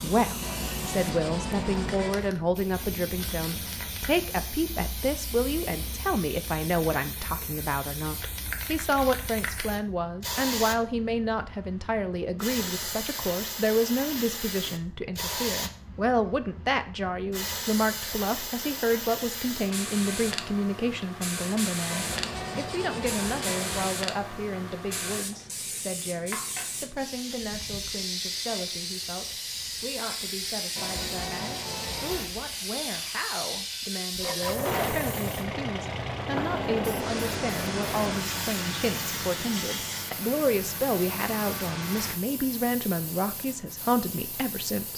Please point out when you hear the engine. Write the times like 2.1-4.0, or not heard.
34.2-42.2.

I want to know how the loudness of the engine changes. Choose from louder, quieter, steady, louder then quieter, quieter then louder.
quieter.